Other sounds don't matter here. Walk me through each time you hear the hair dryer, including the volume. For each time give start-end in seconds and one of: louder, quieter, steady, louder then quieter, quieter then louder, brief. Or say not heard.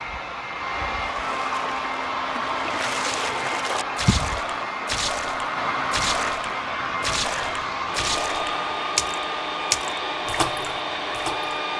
0.0-11.7 steady.